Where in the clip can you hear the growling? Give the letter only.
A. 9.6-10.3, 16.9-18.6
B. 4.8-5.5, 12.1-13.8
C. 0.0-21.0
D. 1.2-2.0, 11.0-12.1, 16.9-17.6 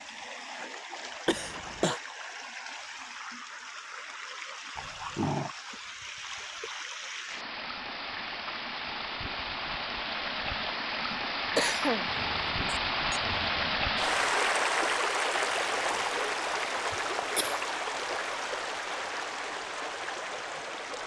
B.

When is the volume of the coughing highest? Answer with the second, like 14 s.
12 s.